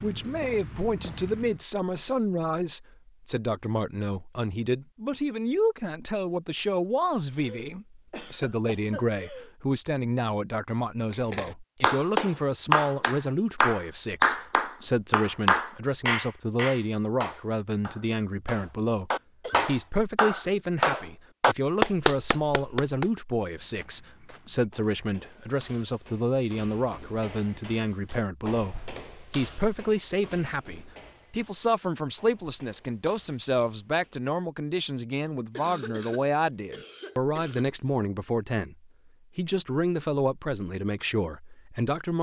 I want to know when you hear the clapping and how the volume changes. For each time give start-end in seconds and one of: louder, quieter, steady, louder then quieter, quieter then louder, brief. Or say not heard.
11.1-23.1 quieter then louder.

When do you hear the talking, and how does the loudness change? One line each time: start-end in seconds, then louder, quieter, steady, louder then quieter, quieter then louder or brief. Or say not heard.
0.0-42.1 steady.